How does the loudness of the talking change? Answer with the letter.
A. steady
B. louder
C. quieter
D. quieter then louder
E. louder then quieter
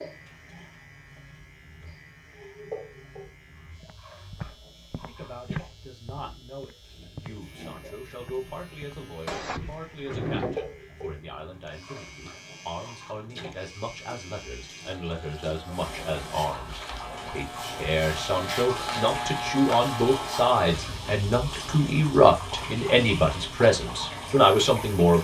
B.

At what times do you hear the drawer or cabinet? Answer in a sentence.
The drawer or cabinet can be heard from 9.2 to 10.6 s.